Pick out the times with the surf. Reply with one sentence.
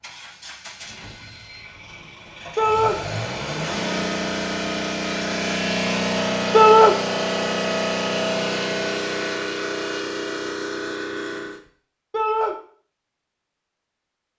You can't hear the surf here.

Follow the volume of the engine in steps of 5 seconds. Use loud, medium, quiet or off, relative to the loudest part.
medium, loud, medium.